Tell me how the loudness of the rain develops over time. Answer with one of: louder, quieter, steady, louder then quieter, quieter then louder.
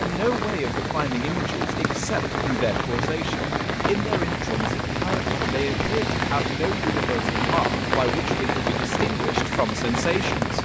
steady.